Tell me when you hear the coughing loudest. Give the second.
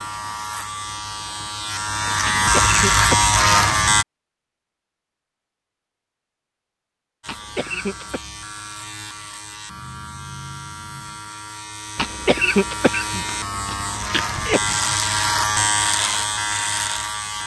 12 s.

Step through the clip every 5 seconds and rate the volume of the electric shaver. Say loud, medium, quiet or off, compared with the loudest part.
loud, quiet, medium, loud.